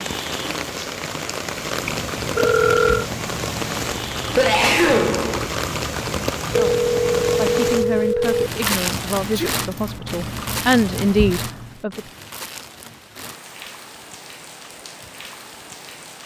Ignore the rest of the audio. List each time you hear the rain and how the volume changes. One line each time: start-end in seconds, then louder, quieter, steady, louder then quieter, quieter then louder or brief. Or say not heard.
0.0-16.2 quieter.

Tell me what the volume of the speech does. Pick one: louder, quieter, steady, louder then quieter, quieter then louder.
louder.